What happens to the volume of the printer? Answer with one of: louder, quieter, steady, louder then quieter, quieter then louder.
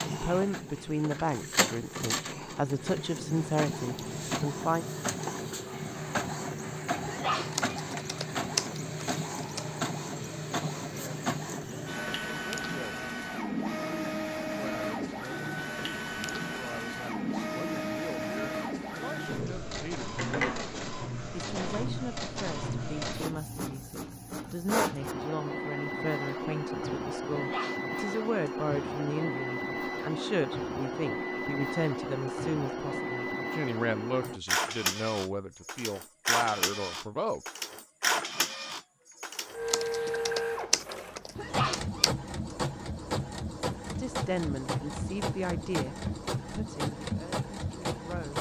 steady.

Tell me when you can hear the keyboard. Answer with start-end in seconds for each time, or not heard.
7.5-9.7, 39.6-42.1.